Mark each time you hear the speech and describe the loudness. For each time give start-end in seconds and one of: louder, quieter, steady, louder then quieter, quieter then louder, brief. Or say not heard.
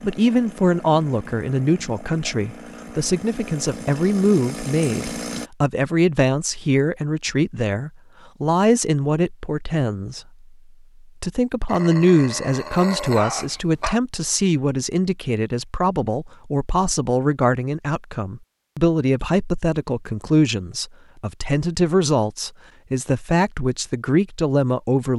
0.0-10.2 steady
11.2-25.1 steady.